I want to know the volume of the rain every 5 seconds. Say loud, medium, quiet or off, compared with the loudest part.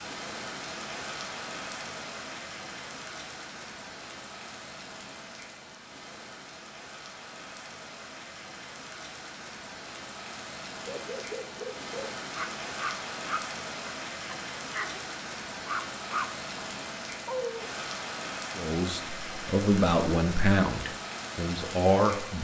loud, medium, loud, loud, loud.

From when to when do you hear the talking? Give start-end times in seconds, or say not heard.
18.6-22.4.